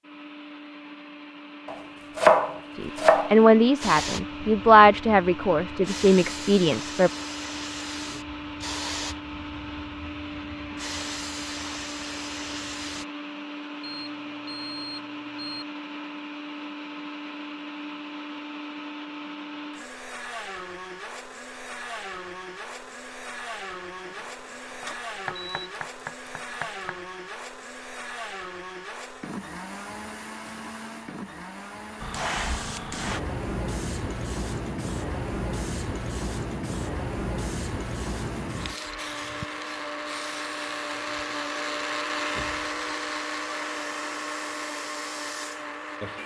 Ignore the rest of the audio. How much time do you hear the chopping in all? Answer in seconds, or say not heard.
4 s.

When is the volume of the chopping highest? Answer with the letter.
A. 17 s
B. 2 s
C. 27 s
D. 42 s
B.